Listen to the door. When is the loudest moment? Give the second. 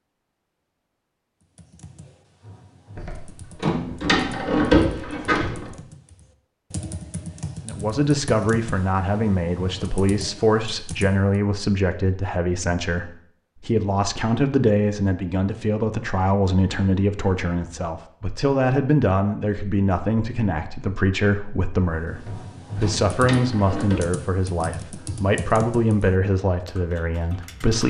5 s.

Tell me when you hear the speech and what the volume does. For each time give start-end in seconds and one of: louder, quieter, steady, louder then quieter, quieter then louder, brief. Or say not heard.
7.7-27.8 steady.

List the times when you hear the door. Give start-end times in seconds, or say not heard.
3.0-5.7, 22.1-24.1.